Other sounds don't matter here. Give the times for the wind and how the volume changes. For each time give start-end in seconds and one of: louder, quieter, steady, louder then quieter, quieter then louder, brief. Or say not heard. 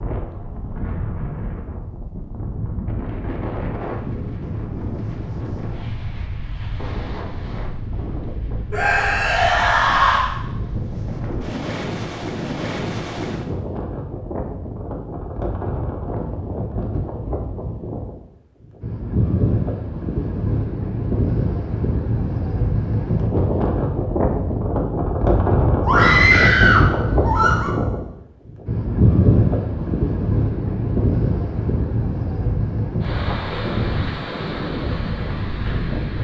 0.0-36.1 louder.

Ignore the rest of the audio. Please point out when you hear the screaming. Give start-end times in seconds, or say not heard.
8.7-10.3, 25.9-27.7.